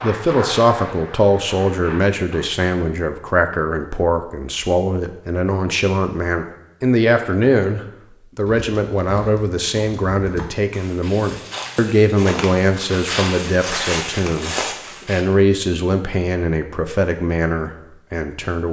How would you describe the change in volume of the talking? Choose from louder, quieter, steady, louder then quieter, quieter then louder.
steady.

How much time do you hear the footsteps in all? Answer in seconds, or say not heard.
7 s.